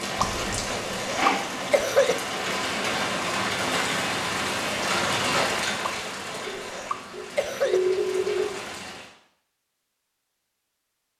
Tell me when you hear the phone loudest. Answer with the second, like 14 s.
8 s.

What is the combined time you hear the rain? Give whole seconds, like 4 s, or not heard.
9 s.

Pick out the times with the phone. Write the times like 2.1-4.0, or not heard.
0.1-0.7, 6.5-8.4.